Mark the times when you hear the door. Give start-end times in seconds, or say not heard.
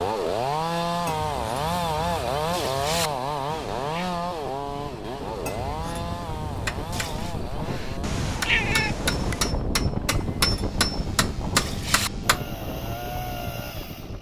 not heard.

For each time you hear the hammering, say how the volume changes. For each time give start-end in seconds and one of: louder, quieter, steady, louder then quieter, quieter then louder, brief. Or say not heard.
6.7-12.4 louder.